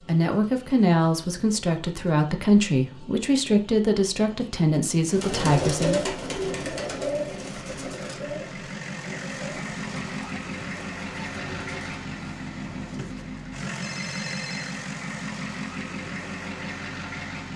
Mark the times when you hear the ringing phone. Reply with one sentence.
You can hear the ringing phone from 13.8 to 14.7 s.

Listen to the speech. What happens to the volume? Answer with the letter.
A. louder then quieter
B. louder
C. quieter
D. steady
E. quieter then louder
D.